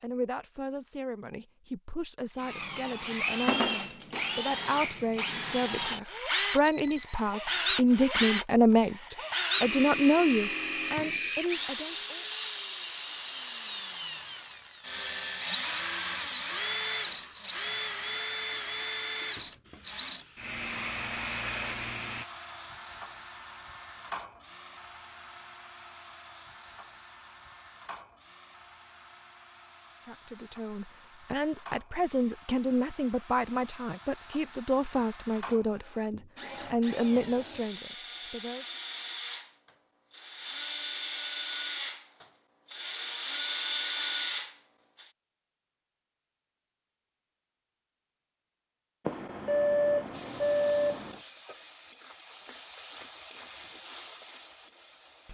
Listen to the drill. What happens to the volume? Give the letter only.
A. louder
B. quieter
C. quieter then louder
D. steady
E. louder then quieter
C.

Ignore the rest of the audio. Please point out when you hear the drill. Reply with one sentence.
The drill can be heard from 2.4 to 45.0 s.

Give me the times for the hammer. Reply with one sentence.
You can't hear the hammer here.